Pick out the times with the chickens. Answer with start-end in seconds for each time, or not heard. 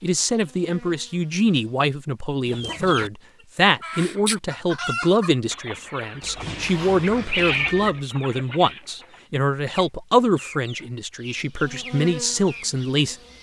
2.5-3.1, 3.8-12.7.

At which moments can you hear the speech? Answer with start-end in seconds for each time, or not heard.
0.0-13.3.